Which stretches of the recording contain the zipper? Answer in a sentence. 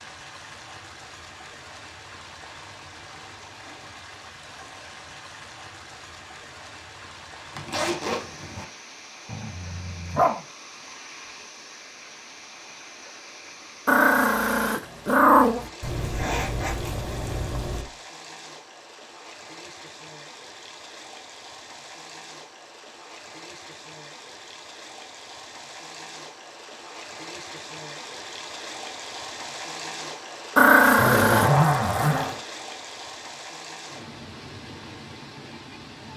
The zipper can be heard from 7.5 to 8.7 s, from 15.8 to 17.9 s and from 30.9 to 32.4 s.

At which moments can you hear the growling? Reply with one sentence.
The growling can be heard from 9.2 to 10.4 s, from 13.8 to 15.7 s and from 30.6 to 31.5 s.